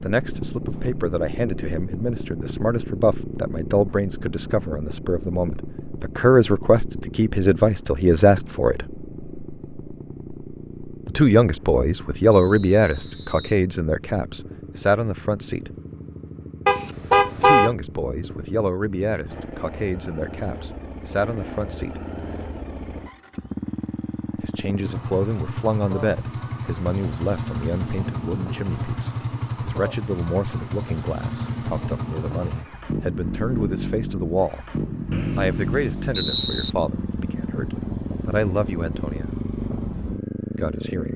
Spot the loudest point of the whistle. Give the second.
36 s.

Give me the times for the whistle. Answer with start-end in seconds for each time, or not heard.
12.3-13.6, 35.1-36.7.